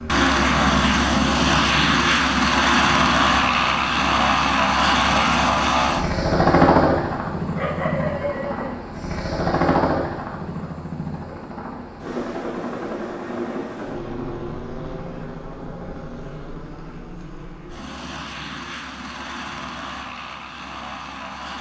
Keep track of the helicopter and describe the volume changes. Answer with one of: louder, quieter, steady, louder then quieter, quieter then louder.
quieter.